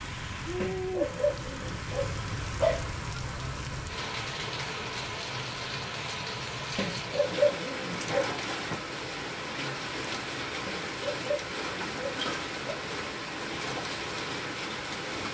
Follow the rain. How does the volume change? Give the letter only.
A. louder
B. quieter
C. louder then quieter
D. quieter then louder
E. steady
E.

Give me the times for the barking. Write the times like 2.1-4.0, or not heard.
0.6-2.9, 6.8-8.3, 10.7-12.8.